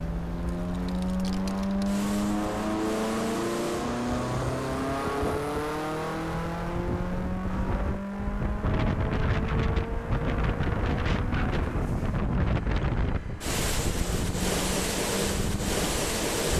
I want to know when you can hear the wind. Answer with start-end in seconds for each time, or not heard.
0.0-16.5.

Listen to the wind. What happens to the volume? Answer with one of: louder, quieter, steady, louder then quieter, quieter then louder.
louder.